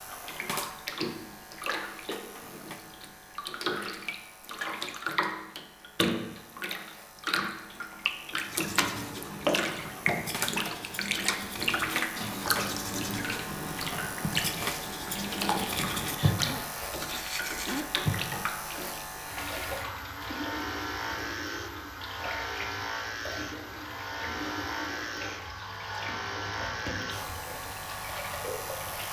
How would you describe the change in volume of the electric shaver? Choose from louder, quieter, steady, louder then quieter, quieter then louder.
louder.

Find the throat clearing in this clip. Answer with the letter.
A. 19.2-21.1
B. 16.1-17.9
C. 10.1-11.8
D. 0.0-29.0
B.